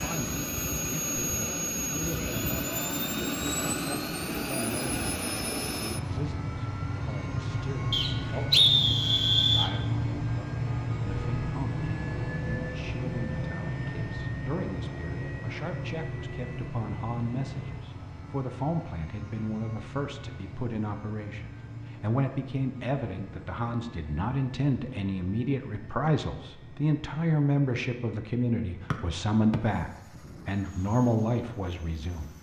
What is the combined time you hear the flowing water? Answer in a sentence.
You can't hear the flowing water here.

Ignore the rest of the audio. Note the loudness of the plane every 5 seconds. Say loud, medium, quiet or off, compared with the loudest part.
loud, loud, loud, medium, quiet, quiet, quiet.